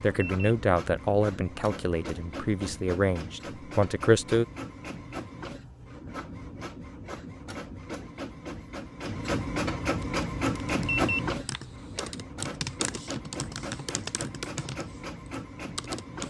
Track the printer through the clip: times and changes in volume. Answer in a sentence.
You can hear the printer from 0.0 to 16.2 s, getting louder then quieter.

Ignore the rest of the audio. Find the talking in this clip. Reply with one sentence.
The talking can be heard from 0.0 to 4.5 s.